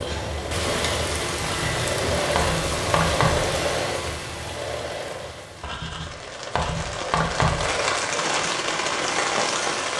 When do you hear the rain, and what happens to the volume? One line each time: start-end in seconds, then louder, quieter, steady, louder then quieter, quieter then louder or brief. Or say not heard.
0.0-9.9 quieter then louder.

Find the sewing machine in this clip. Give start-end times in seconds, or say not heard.
0.0-9.8.